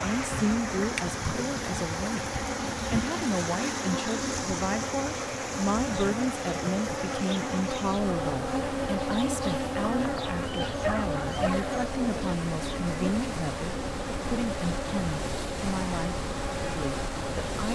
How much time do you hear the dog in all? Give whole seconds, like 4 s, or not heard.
2 s.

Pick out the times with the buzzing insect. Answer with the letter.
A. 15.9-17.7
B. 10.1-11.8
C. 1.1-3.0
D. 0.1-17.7
D.